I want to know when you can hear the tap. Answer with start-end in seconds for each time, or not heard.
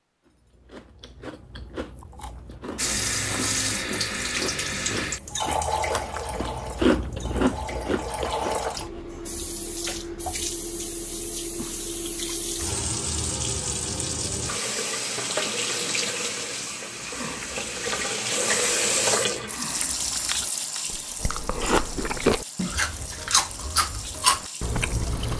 2.8-25.3.